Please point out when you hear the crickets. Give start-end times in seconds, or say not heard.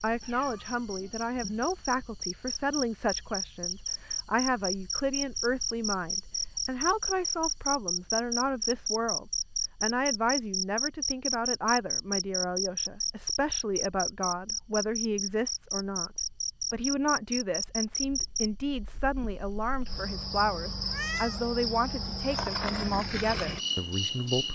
0.0-24.5.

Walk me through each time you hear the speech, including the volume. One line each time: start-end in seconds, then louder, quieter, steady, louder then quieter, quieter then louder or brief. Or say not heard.
0.0-16.1 steady
16.7-24.5 steady.